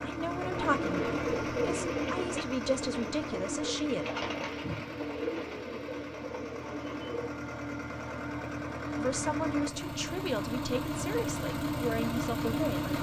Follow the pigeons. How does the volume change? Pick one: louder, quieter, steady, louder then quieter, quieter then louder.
quieter.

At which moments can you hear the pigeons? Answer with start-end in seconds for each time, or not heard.
0.3-7.3.